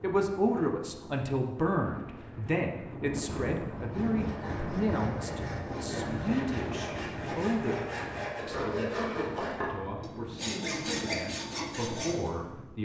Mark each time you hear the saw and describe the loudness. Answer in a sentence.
The saw can be heard from 3.7 to 12.3 s, getting louder.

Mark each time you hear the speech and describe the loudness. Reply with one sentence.
The speech can be heard from 0.0 to 12.7 s, getting quieter.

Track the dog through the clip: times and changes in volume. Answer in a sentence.
The dog can't be heard in this clip.